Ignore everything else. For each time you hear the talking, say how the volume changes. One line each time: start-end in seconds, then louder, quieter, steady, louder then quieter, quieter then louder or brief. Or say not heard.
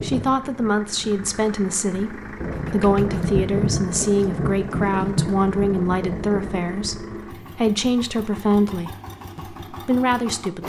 0.0-10.6 steady.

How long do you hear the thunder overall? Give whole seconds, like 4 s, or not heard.
4 s.